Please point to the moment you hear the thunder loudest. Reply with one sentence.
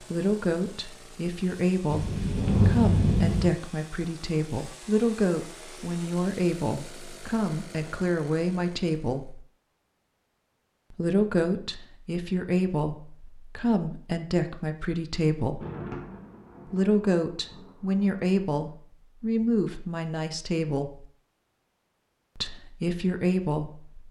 The volume of the thunder peaks at 3 seconds.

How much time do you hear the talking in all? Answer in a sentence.
You can hear the talking for 20 seconds altogether.